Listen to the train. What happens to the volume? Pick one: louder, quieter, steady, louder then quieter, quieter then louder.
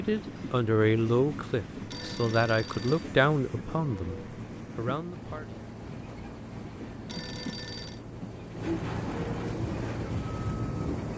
louder.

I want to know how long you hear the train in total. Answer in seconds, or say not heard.
11 s.